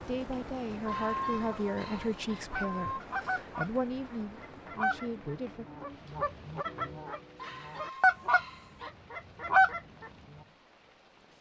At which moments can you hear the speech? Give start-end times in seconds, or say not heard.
0.1-5.7.